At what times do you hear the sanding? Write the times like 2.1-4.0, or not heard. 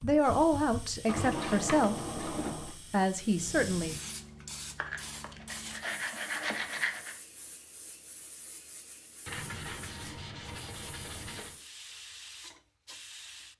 1.1-2.8, 4.8-7.2, 9.2-11.6.